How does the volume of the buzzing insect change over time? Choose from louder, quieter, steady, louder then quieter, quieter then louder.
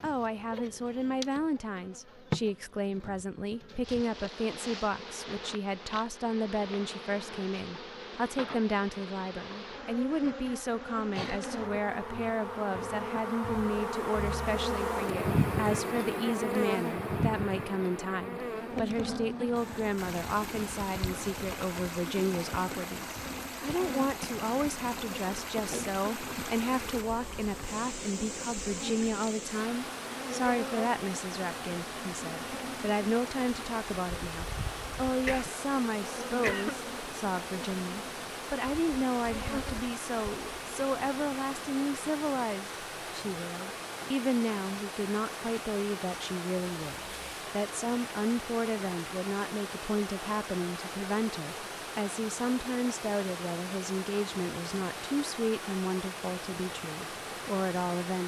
louder then quieter.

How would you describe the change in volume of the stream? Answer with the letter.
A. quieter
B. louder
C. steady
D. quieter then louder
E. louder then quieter
C.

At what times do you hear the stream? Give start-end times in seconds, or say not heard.
19.6-58.2.